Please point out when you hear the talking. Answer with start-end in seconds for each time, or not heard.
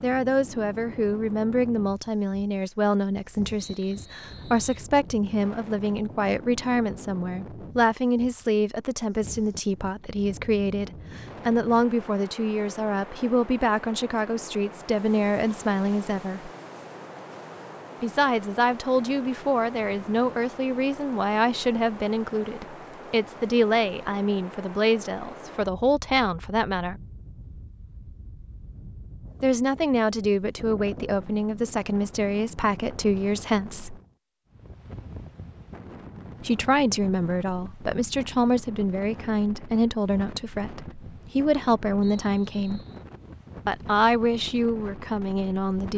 0.0-16.5, 18.0-27.0, 29.4-34.0, 36.4-42.8, 43.6-45.9.